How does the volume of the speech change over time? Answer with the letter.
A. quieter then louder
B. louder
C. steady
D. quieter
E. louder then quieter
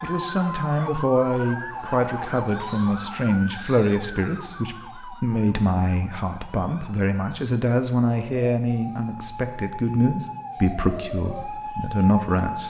C.